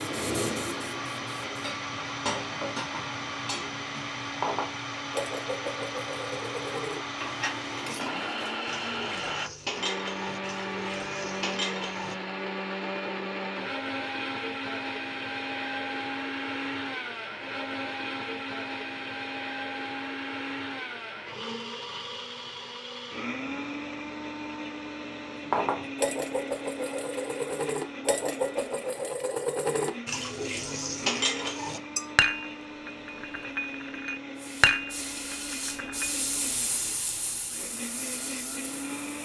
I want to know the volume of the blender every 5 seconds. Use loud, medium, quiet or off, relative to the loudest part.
loud, loud, loud, loud, loud, medium, medium, medium.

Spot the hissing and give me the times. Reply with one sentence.
You can hear the hissing from 0.0 to 1.8 s and from 34.4 to 39.2 s.